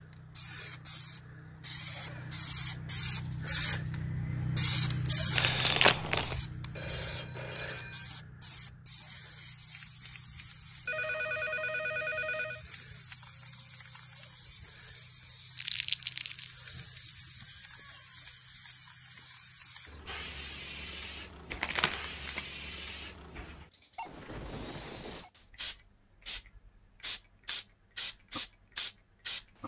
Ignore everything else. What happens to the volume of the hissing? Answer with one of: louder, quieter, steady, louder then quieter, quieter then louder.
quieter then louder.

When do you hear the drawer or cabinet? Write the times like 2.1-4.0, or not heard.
not heard.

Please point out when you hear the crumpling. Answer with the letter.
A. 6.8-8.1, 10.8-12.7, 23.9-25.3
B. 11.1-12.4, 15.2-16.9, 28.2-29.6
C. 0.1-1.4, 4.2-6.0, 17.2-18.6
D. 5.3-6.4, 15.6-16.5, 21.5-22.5
D.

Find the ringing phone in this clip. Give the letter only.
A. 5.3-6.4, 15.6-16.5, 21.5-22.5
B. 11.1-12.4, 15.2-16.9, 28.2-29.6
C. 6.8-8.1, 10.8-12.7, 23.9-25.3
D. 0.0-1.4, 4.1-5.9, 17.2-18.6
C.